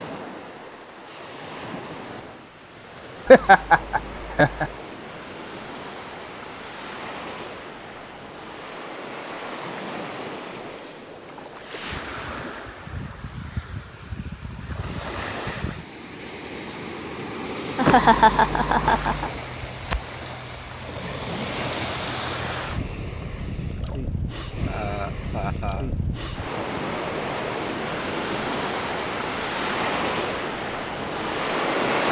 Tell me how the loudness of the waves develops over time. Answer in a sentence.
The volume of the waves goes up.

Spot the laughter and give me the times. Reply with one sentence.
You can hear the laughter from 3.2 to 4.7 s, from 17.8 to 19.3 s and from 24.6 to 25.9 s.